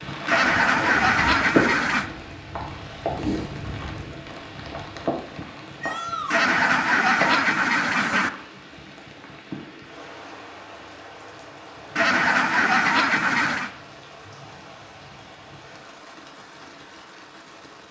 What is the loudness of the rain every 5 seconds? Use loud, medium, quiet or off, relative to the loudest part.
loud, medium, quiet, quiet.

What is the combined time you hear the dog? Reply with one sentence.
You can't hear the dog here.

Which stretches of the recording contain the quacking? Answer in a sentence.
You can hear the quacking from 0.2 to 2.1 s, from 6.3 to 8.3 s and from 11.9 to 13.7 s.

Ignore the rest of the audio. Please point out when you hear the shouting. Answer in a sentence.
The shouting can be heard from 5.8 to 6.5 s.